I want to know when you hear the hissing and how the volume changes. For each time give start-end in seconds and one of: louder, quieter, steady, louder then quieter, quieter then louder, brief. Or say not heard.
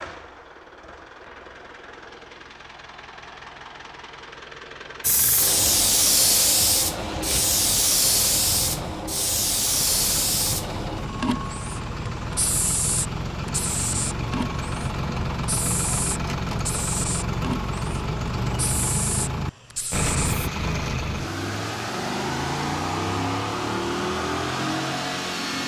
5.0-20.5 quieter.